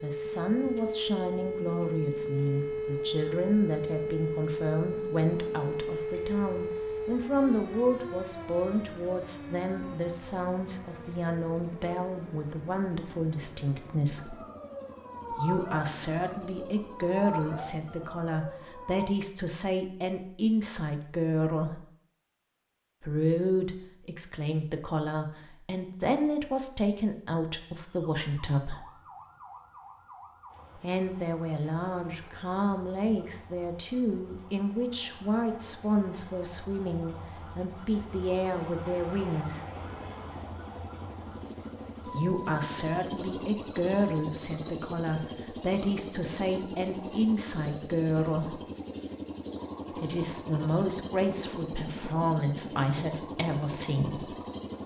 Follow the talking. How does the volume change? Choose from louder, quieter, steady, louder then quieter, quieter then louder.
steady.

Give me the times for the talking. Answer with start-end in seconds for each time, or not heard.
0.0-14.3, 15.3-21.8, 23.0-28.9, 30.8-39.6, 42.0-48.5, 50.0-54.4.